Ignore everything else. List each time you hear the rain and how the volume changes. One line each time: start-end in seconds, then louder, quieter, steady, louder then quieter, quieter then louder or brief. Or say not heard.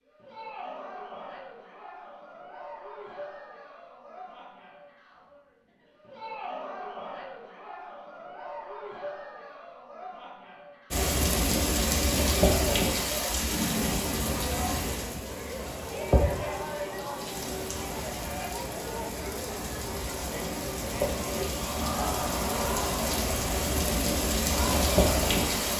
10.9-25.7 quieter then louder.